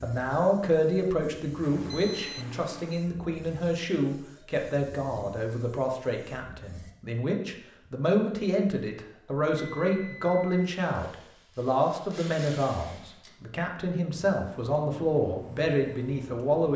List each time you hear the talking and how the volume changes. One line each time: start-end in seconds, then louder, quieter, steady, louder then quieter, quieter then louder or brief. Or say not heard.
0.0-16.7 steady.